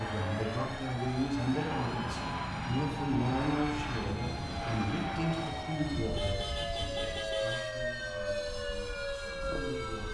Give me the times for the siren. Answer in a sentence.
The siren can be heard from 0.0 to 10.0 s.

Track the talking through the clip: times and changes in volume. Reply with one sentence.
You can hear the talking from 0.0 to 10.0 s, getting quieter.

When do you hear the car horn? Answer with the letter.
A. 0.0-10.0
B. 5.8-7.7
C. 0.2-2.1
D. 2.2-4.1
B.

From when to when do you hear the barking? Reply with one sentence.
You can't hear the barking here.